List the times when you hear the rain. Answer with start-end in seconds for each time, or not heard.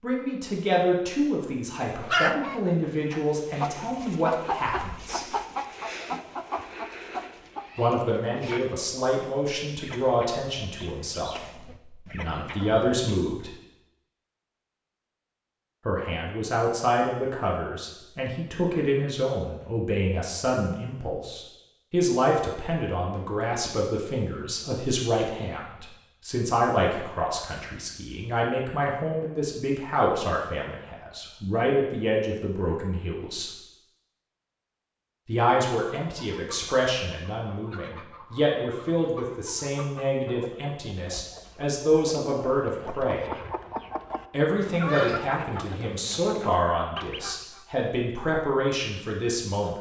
not heard.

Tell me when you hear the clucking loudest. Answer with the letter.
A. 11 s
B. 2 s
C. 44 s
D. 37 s
B.